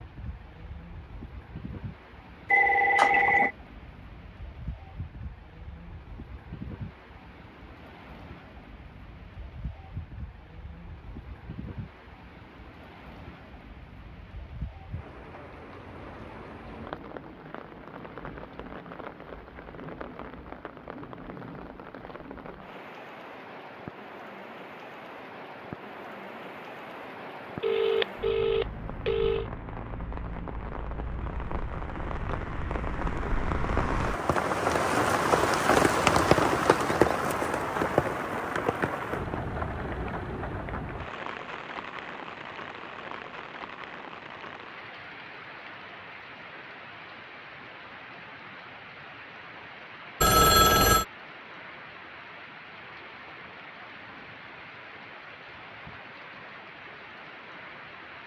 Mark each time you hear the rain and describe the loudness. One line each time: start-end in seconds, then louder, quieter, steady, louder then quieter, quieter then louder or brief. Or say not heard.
0.0-58.2 louder then quieter.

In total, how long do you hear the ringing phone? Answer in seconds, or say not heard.
4 s.